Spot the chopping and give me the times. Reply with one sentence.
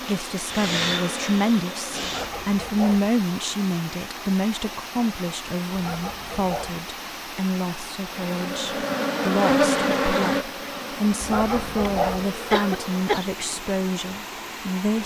You can't hear the chopping here.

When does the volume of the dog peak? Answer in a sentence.
The volume of the dog peaks at 12 seconds.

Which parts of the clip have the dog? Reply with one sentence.
The dog can be heard from 2.0 to 3.1 s, from 5.7 to 6.8 s and from 11.2 to 12.3 s.